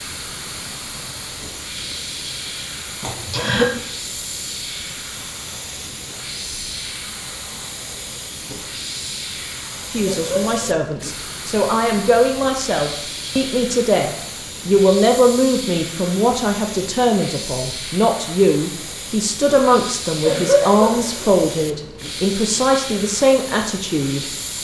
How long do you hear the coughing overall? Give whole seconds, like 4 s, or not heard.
3 s.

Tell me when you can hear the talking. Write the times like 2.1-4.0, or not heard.
9.9-24.3.